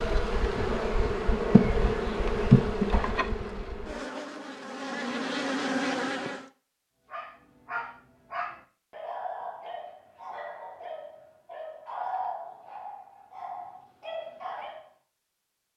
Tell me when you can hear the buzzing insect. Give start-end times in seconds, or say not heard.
0.0-6.5.